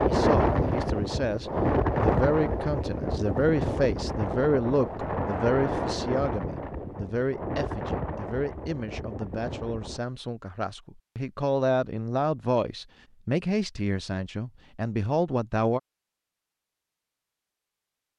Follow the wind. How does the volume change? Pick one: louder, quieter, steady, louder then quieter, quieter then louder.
quieter.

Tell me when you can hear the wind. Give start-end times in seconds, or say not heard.
0.0-10.0.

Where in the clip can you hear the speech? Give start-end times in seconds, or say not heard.
0.1-15.8.